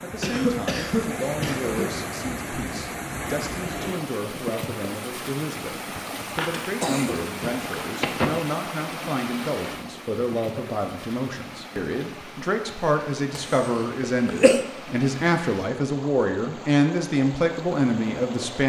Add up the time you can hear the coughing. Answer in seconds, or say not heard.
5 s.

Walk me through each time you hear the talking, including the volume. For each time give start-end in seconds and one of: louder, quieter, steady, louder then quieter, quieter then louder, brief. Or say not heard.
0.0-18.6 louder.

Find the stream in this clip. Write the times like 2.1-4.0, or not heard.
0.0-18.6.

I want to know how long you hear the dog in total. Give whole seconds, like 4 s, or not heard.
not heard.